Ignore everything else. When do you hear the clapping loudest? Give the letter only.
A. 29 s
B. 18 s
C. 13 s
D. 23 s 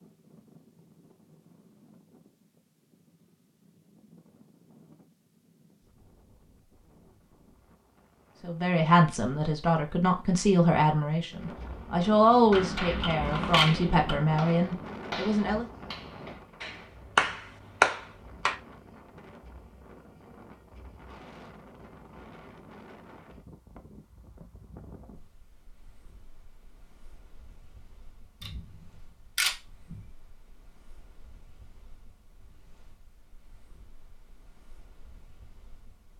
B.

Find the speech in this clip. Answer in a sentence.
You can hear the speech from 8.4 to 15.7 s.